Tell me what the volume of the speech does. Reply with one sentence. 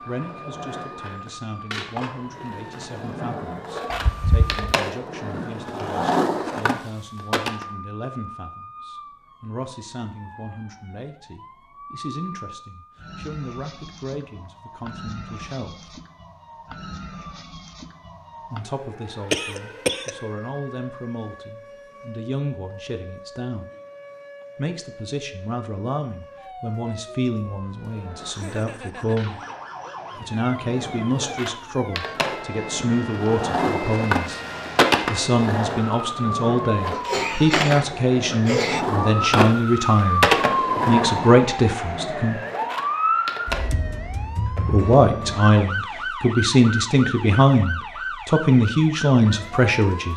The volume of the speech goes up.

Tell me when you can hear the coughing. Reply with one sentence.
The coughing can be heard from 3.9 to 4.7 s, from 19.3 to 20.1 s and from 36.9 to 38.9 s.